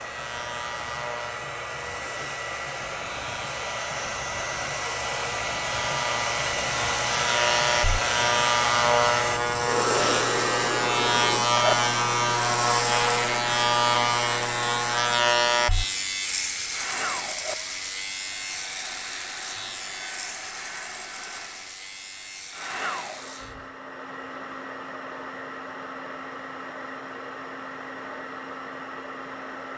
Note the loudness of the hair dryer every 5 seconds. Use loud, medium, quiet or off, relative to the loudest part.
medium, loud, loud, medium, medium, medium.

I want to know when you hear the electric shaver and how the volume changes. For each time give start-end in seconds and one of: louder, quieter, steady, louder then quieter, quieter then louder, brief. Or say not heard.
0.0-23.7 louder then quieter.